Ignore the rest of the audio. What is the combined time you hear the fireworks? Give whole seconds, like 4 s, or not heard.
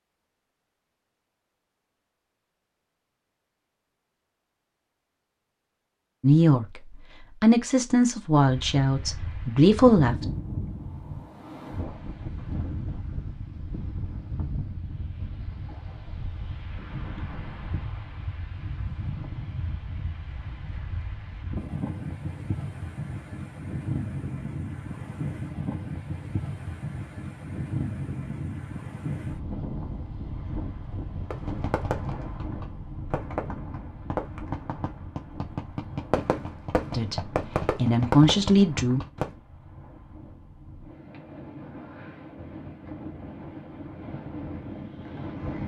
8 s.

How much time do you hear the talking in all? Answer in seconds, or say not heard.
6 s.